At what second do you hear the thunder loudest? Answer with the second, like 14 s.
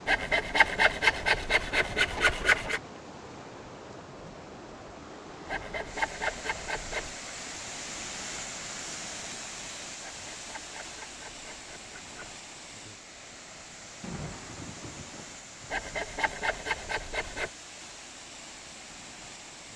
14 s.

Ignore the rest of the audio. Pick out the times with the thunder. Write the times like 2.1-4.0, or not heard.
14.0-15.8.